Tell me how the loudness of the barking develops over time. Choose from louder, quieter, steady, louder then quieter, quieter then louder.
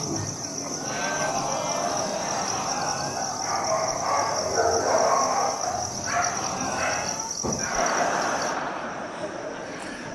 louder then quieter.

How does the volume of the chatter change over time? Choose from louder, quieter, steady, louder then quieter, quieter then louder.
quieter then louder.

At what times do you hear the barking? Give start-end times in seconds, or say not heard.
1.9-8.0.